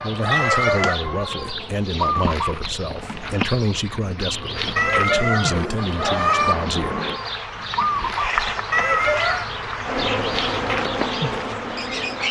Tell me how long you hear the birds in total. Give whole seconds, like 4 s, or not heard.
12 s.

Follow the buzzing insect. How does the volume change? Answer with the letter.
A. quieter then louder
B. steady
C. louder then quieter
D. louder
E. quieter
D.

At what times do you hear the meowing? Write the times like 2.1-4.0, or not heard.
0.3-1.0, 4.8-6.5, 8.7-9.4.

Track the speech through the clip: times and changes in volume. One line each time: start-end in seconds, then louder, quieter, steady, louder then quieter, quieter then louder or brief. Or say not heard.
0.0-7.0 steady.